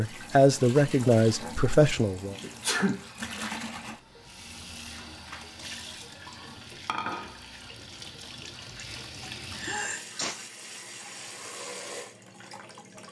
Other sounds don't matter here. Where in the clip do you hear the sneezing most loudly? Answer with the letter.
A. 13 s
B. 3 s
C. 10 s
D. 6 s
B.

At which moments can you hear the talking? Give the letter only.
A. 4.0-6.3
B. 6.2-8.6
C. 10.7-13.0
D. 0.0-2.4
D.